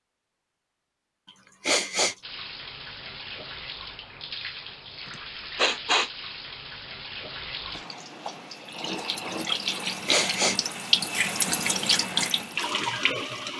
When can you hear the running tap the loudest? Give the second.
11 s.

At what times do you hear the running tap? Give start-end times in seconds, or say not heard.
2.2-13.5.